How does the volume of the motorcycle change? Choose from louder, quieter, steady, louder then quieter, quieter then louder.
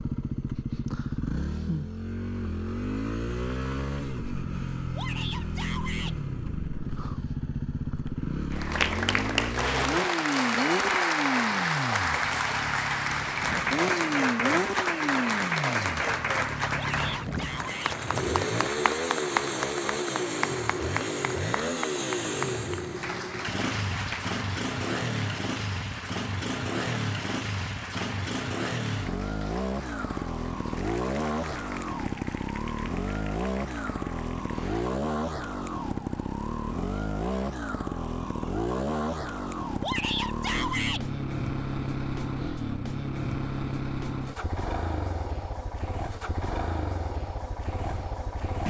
steady.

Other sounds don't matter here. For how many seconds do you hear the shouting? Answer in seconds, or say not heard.
4 s.